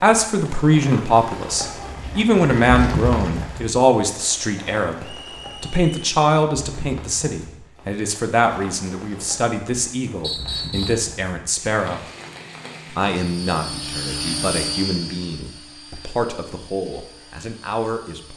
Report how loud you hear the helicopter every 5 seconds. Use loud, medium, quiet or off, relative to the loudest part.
off, off, loud, quiet.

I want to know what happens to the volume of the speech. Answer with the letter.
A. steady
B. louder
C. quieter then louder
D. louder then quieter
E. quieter
E.